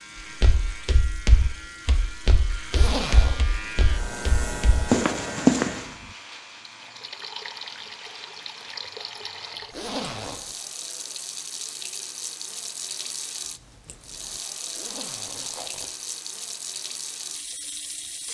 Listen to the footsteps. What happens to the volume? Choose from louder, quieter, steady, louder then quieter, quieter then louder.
quieter then louder.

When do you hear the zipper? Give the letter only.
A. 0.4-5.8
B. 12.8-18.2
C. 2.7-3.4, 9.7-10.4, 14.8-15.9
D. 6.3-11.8
C.